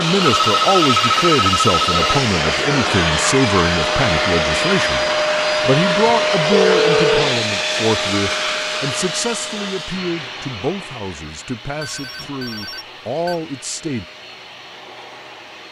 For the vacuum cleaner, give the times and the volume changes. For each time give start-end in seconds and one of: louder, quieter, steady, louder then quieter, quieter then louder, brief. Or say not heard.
0.0-15.6 quieter.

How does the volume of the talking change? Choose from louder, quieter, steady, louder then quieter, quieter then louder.
quieter.